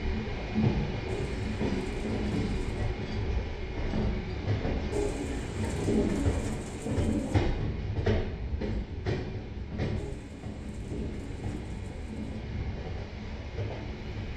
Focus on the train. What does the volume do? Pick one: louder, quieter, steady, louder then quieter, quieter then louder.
quieter.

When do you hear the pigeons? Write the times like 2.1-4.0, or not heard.
1.1-2.9, 4.9-7.4, 9.9-12.4.